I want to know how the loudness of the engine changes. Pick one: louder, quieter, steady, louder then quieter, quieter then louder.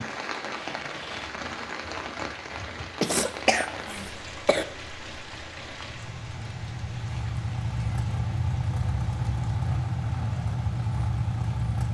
louder.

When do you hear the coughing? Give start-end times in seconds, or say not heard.
3.0-4.7.